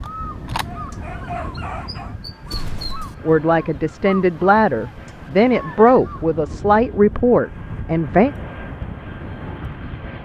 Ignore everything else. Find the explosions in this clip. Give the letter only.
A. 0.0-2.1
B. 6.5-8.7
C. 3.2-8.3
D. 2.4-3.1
D.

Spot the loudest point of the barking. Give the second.
1 s.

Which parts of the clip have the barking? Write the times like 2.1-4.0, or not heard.
0.0-2.1.